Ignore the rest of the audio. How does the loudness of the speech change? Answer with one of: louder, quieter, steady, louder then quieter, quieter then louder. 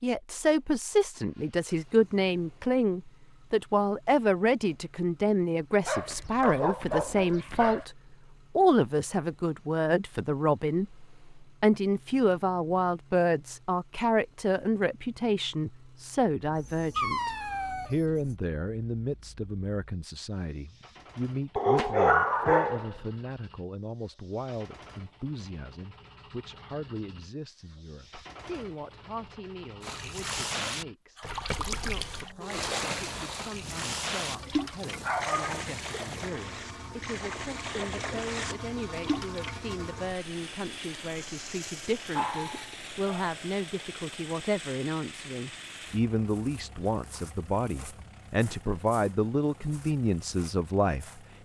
quieter then louder.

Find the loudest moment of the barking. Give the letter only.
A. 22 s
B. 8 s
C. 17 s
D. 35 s
A.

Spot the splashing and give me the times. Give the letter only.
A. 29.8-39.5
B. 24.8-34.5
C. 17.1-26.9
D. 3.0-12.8
A.